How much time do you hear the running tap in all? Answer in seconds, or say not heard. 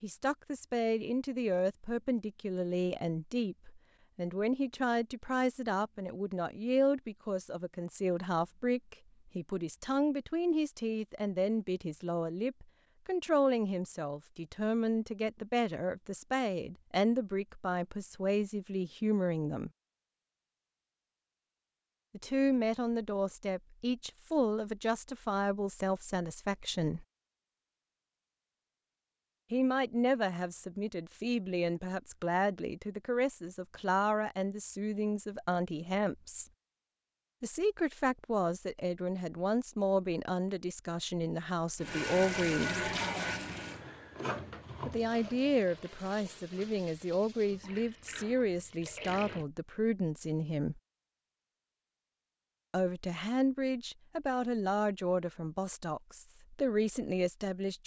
8 s.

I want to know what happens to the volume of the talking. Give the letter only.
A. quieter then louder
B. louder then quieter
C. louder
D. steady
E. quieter
D.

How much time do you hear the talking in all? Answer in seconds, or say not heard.
48 s.